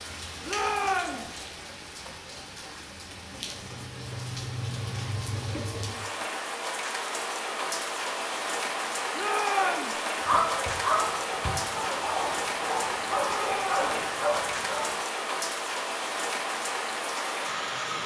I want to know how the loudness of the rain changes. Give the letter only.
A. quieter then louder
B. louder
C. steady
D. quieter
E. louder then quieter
B.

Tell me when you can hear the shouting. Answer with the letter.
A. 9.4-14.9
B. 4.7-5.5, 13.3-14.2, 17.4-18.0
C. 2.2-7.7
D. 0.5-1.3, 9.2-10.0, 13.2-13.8
D.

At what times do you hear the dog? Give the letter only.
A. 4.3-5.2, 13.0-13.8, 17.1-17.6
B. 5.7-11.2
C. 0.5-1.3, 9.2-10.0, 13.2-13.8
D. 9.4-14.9
D.